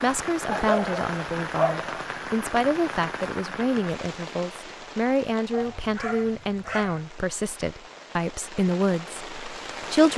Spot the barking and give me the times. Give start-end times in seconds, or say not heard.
0.5-1.9, 5.5-7.0.